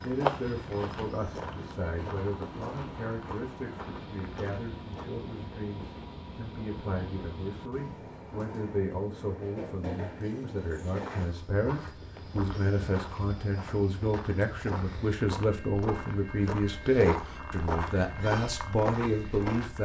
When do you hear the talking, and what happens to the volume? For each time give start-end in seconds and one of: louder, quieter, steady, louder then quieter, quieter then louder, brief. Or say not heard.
0.0-19.8 louder.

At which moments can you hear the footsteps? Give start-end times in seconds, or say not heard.
0.0-5.0, 10.9-19.8.